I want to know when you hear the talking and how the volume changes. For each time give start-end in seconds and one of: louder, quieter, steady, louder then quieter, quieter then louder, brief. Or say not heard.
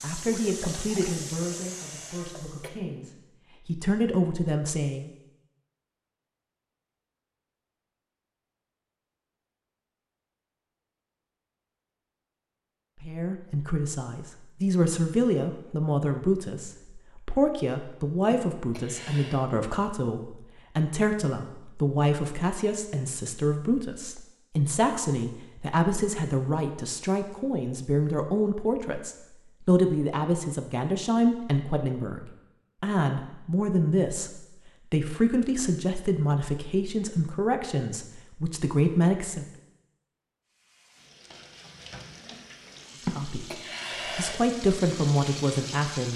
0.0-5.1 quieter then louder
13.0-39.5 steady
43.0-43.5 brief
44.1-46.1 brief.